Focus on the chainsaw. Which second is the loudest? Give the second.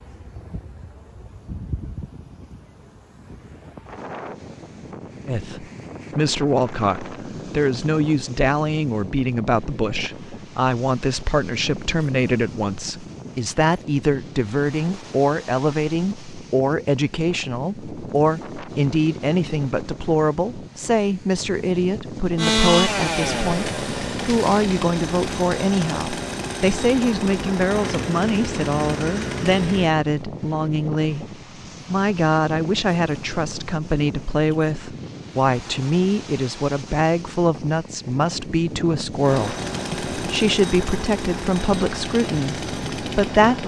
23 s.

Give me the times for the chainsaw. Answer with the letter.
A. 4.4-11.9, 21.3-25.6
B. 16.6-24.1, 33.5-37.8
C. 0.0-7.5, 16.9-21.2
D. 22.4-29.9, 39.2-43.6
D.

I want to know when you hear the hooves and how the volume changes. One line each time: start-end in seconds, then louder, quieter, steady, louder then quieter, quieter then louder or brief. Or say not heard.
not heard.